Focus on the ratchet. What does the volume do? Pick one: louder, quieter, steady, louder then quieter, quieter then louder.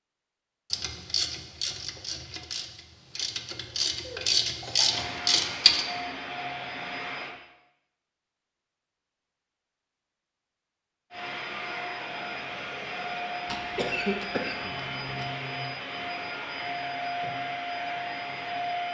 quieter then louder.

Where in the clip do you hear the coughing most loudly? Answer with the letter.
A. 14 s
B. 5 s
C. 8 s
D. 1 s
A.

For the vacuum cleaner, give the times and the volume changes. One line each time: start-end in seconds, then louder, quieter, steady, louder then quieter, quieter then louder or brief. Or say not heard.
4.8-7.3 brief
11.1-18.9 steady.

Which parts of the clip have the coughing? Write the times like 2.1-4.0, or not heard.
4.0-5.1, 13.4-15.3.